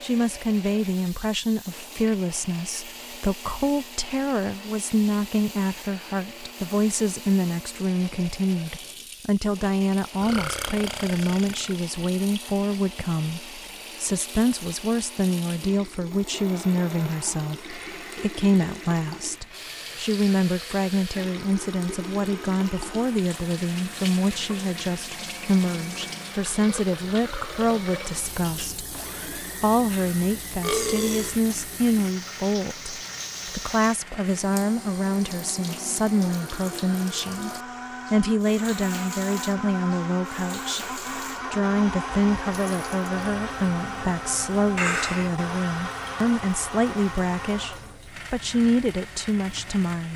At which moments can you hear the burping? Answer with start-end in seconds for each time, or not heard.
10.2-11.9, 29.9-31.4, 44.8-45.4.